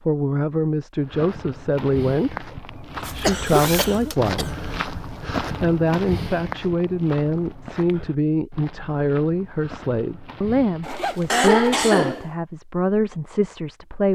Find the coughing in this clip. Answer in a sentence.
The coughing can be heard from 3.0 to 4.5 s and from 11.3 to 12.2 s.